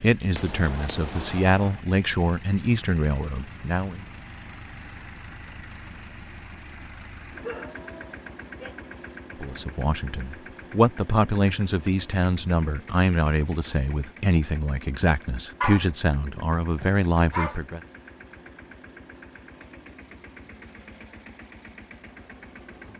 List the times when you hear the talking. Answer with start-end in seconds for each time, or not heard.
0.0-4.0, 9.4-17.8.